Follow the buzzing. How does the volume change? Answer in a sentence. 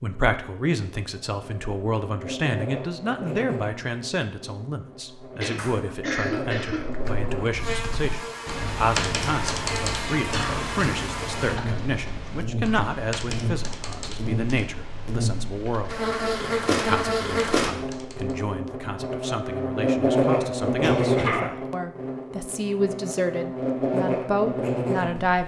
The loudness of the buzzing goes up.